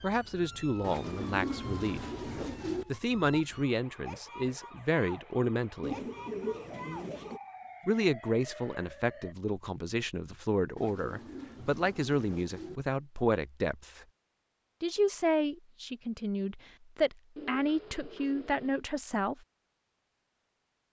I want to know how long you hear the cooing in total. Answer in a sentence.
You can hear the cooing for 7 seconds altogether.